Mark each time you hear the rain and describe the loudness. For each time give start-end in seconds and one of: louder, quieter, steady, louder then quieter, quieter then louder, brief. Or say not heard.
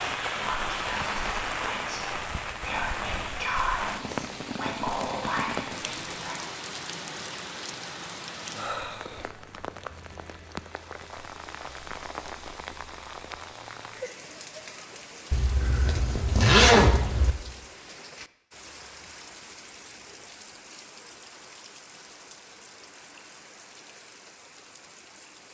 0.0-25.4 quieter.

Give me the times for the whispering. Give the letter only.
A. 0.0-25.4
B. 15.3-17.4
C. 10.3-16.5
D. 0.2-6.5
D.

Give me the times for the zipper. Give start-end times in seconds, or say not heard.
15.3-17.4.